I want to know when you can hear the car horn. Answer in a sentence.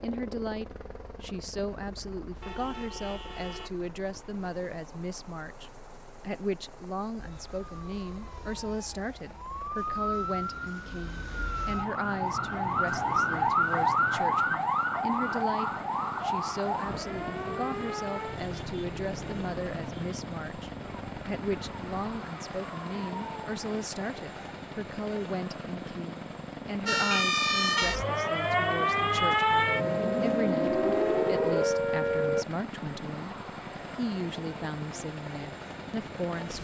You can hear the car horn from 2.4 to 3.7 s.